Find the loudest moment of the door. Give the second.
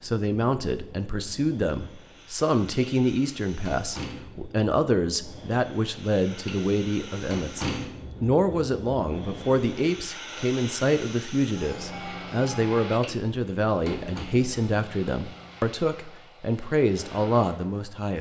8 s.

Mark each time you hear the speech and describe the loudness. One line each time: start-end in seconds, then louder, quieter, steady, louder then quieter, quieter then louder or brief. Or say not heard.
0.0-18.1 steady.